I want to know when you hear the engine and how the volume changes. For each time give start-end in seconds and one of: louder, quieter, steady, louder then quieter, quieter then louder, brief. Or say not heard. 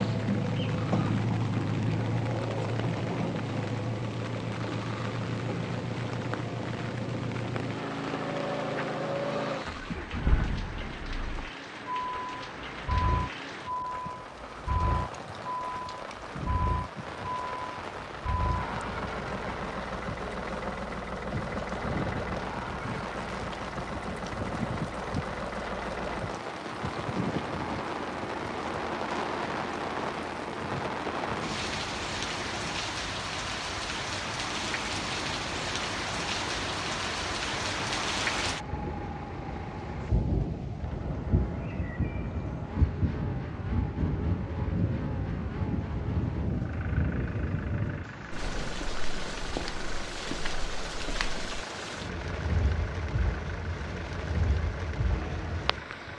0.0-56.1 quieter.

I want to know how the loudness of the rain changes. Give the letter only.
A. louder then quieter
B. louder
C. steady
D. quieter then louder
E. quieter
B.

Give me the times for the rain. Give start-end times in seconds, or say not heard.
0.0-56.1.